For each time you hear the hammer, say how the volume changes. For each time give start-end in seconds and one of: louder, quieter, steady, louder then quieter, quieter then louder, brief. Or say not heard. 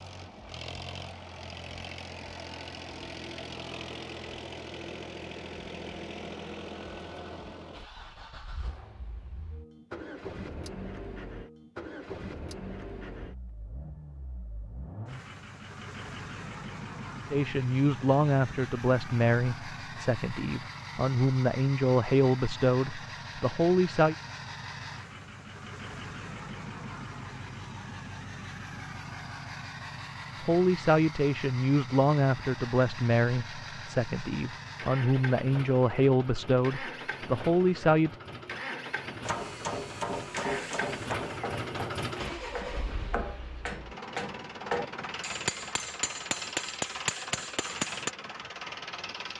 39.2-48.1 quieter then louder.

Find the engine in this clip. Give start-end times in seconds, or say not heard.
0.0-49.3.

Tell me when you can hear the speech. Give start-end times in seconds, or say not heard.
17.3-24.1, 30.4-38.1.